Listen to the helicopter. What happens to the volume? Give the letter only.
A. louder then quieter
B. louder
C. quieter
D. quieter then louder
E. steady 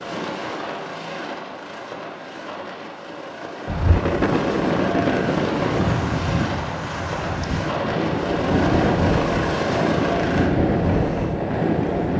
B.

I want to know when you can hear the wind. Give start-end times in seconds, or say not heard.
3.6-12.1.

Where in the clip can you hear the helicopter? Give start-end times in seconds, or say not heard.
0.0-10.5.